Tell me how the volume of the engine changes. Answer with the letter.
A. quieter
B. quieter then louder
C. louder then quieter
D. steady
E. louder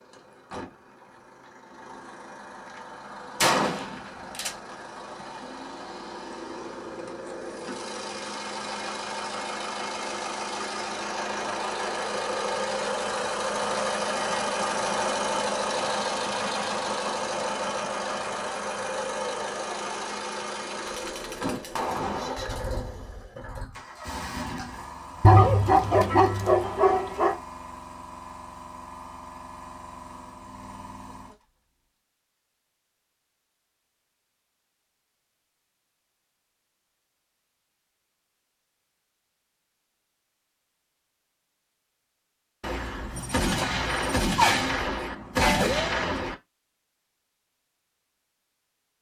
C.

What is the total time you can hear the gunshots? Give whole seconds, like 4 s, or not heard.
7 s.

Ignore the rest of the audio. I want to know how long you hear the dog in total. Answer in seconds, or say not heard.
2 s.